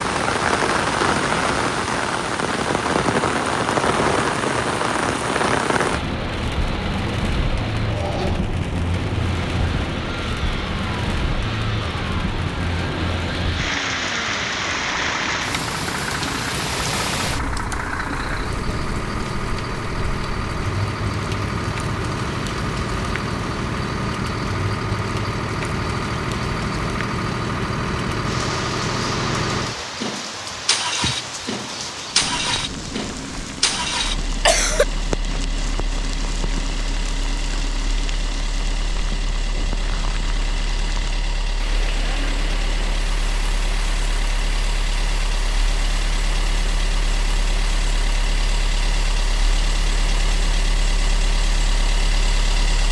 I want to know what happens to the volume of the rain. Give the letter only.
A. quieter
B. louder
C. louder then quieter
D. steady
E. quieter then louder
A.